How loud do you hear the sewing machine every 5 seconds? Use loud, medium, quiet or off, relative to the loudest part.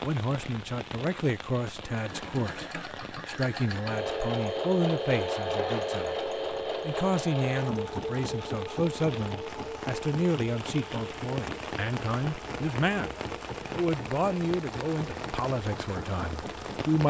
loud, loud, medium, medium.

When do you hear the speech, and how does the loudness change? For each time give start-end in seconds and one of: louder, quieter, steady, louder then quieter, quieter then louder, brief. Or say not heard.
0.0-17.0 steady.